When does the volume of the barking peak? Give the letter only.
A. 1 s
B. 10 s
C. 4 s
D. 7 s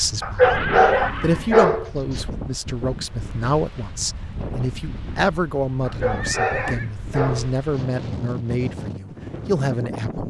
A.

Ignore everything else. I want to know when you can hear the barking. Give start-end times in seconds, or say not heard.
0.2-2.2, 5.8-7.8.